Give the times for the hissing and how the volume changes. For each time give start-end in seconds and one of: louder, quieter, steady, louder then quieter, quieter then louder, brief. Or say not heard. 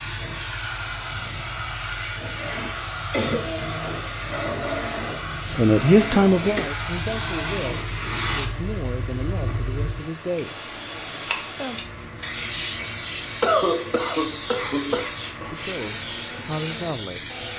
0.0-17.5 steady.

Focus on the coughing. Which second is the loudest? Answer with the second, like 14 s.
14 s.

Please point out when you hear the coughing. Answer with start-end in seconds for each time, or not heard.
3.1-3.7, 6.1-6.8, 13.4-15.1.